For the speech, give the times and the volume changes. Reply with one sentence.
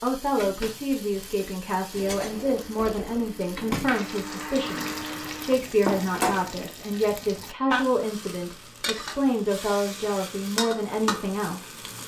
You can hear the speech from 0.0 to 11.8 s, at a steady volume.